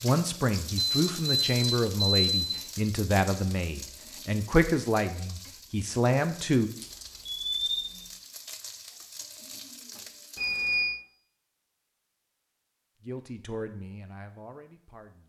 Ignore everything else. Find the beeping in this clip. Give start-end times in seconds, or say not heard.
0.8-2.6, 6.8-8.1, 10.3-10.9.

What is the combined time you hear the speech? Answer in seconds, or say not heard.
9 s.